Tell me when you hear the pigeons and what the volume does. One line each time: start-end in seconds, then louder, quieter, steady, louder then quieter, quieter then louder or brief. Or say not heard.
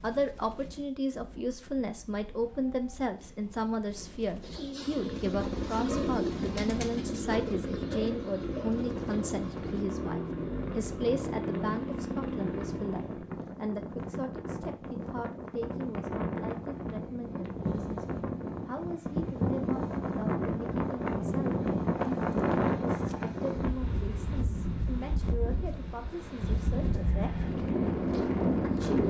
4.4-9.8 louder then quieter.